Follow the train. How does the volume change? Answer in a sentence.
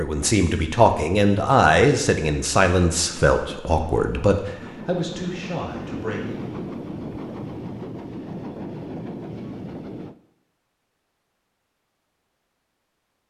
The volume of the train goes up.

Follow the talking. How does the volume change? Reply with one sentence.
The loudness of the talking goes down.